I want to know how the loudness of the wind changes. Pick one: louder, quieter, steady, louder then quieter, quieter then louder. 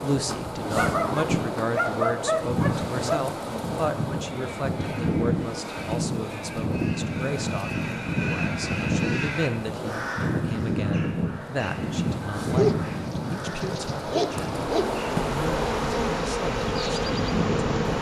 steady.